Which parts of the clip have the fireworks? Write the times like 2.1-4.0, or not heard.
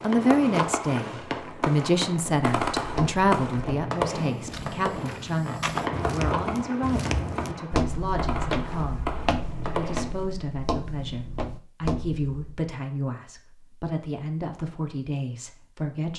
0.0-10.4.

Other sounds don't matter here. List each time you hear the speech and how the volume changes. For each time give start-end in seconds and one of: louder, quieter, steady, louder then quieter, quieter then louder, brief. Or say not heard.
0.0-16.1 quieter.